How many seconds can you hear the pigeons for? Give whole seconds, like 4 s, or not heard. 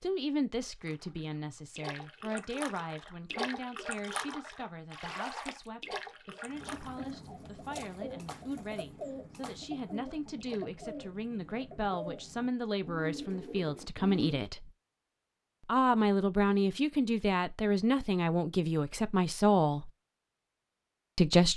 8 s.